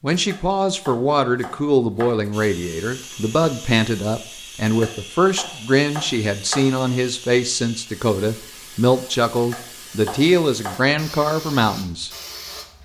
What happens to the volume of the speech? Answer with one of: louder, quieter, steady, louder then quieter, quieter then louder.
steady.